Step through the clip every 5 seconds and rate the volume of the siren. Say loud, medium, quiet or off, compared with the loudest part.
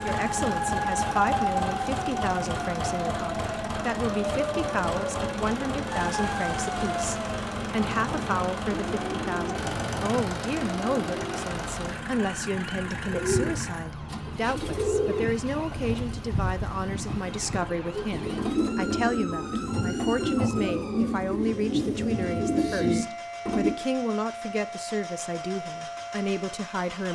loud, loud, medium, medium, medium, medium.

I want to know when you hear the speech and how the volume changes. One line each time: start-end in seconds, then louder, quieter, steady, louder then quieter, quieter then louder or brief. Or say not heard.
0.0-27.0 steady.